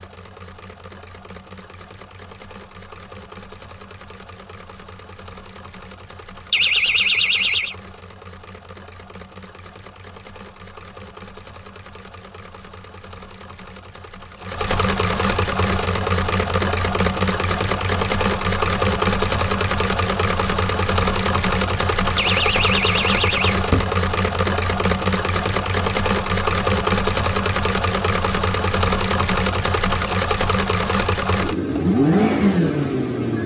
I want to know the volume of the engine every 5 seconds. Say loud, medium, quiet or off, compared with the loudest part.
quiet, quiet, quiet, loud, loud, loud, loud.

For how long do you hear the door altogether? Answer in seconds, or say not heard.
3 s.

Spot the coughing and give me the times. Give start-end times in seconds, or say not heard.
not heard.